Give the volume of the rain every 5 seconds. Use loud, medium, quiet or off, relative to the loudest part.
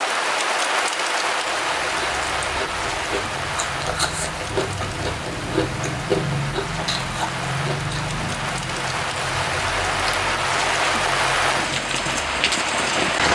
loud, medium, loud.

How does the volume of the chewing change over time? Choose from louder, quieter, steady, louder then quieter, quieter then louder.
louder then quieter.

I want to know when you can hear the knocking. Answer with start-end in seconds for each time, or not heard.
not heard.